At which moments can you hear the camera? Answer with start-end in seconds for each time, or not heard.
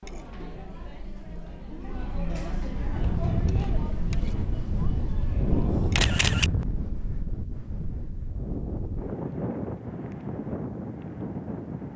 6.0-6.5.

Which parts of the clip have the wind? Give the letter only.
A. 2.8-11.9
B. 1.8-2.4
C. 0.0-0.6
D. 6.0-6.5
A.